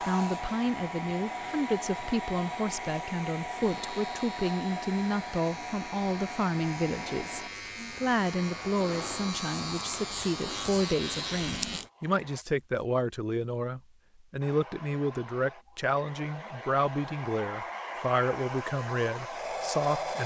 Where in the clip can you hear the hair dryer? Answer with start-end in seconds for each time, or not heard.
0.0-12.4, 14.4-20.2.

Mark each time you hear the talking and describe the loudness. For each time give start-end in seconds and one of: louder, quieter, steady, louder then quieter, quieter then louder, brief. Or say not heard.
0.1-20.2 steady.